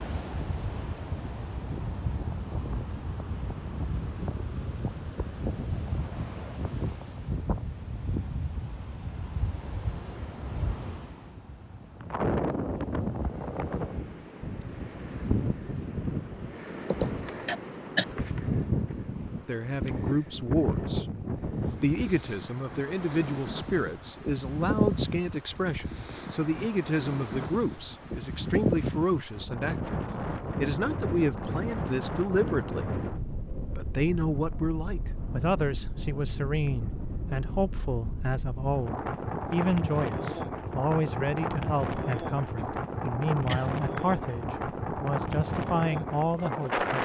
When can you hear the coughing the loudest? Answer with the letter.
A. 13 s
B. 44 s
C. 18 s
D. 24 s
C.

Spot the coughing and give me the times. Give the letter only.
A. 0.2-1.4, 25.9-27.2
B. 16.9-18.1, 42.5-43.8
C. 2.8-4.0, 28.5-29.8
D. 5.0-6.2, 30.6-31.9
B.